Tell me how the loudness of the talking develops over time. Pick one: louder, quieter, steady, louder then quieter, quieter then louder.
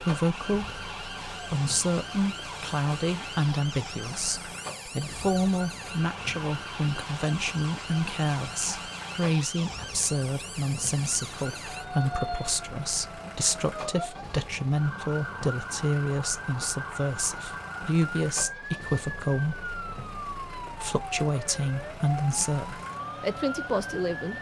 steady.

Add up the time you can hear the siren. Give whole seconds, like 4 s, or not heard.
24 s.